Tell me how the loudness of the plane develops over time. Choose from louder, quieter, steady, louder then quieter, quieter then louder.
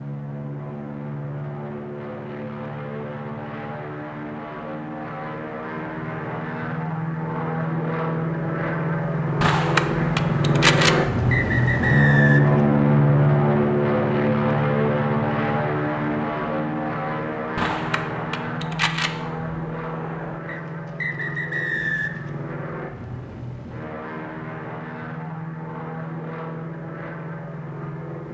louder then quieter.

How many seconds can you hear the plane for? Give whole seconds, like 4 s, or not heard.
28 s.